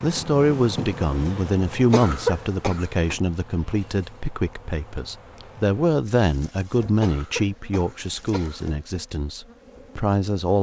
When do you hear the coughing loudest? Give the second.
2 s.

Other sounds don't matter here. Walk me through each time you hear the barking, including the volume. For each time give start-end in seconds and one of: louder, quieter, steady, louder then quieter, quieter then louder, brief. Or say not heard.
not heard.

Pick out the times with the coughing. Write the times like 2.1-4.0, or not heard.
1.9-3.1, 7.0-8.7.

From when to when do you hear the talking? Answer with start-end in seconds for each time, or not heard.
0.0-10.5.